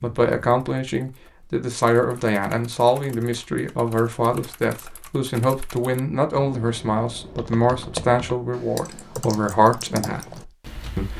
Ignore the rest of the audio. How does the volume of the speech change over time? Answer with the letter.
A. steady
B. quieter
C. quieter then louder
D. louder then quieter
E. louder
A.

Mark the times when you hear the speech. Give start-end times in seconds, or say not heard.
0.0-11.1.